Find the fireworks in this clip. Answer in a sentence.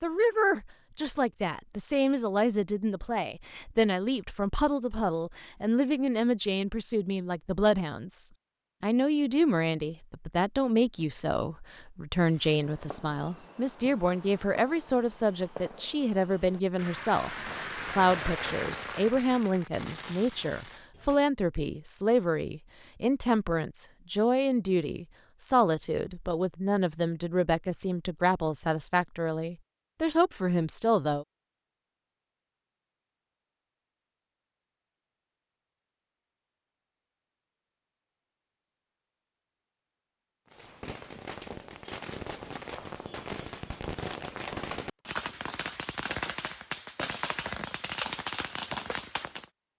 You can hear the fireworks from 12.2 to 21.2 s and from 40.5 to 49.5 s.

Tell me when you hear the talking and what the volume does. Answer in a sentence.
You can hear the talking from 0.0 to 31.2 s, at a steady volume.